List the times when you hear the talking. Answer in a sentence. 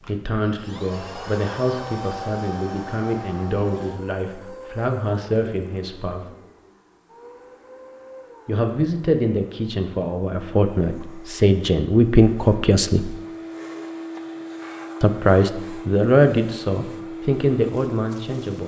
The talking can be heard from 0.1 to 6.2 s, from 8.4 to 13.2 s and from 15.0 to 18.6 s.